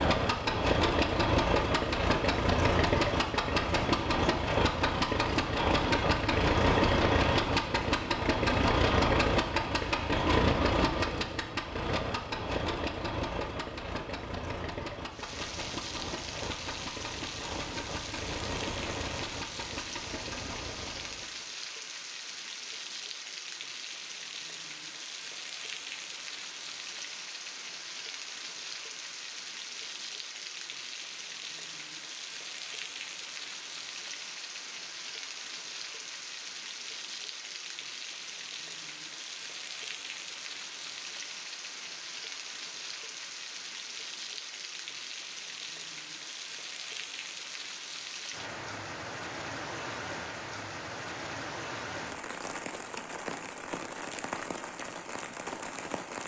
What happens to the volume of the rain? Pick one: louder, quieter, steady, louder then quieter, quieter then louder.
steady.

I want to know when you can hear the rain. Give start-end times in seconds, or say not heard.
15.1-56.2.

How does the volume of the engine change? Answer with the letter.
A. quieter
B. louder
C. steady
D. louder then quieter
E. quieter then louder
A.